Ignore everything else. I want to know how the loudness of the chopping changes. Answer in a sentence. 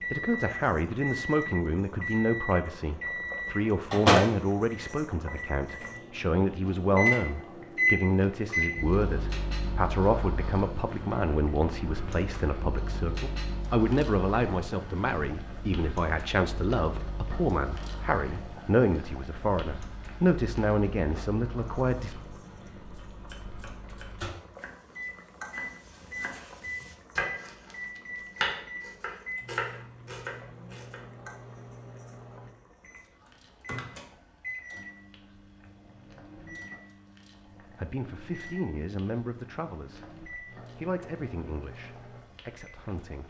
The loudness of the chopping goes up.